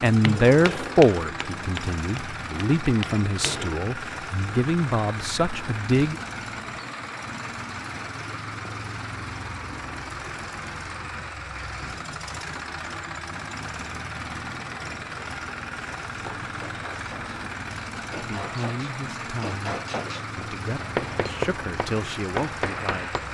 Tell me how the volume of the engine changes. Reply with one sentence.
The volume of the engine stays about the same.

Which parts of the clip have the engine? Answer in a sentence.
You can hear the engine from 0.0 to 23.3 s.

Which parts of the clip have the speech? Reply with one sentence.
You can hear the speech from 0.0 to 6.2 s, from 18.2 to 19.8 s and from 20.4 to 23.1 s.